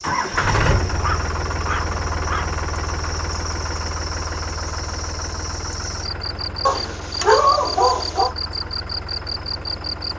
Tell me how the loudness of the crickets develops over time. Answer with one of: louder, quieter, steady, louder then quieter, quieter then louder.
louder.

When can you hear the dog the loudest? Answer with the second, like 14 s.
7 s.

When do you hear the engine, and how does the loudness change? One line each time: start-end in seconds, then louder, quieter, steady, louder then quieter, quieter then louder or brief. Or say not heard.
0.0-10.1 quieter.